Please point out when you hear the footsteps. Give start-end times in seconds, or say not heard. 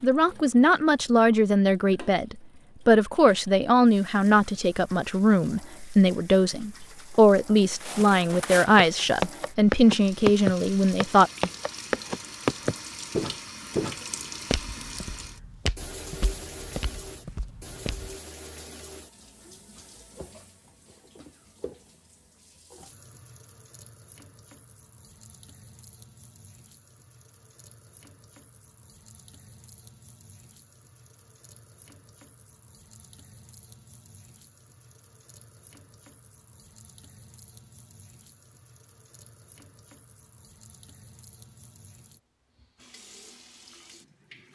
7.7-18.1.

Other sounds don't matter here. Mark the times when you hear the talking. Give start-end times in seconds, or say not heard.
0.0-11.3.